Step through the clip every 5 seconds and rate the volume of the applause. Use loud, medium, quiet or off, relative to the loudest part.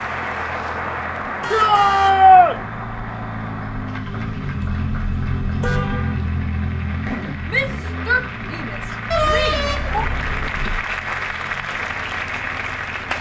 loud, medium, loud.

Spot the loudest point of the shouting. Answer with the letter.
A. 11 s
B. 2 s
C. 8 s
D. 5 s
B.